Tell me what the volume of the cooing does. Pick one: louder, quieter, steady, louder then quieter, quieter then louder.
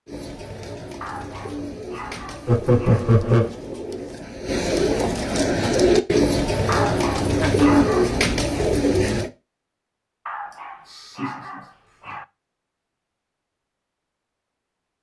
louder.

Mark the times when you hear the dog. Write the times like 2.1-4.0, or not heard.
1.0-3.0, 6.7-8.2, 10.2-12.2.